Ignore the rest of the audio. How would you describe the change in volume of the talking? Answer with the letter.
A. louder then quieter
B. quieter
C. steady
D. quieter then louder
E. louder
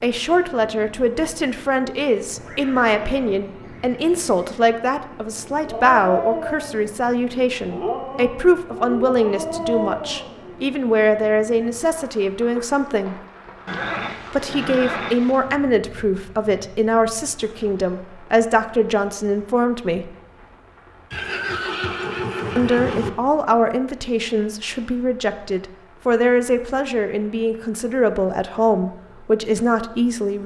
C.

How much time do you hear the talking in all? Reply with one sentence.
You can hear the talking for 27 seconds altogether.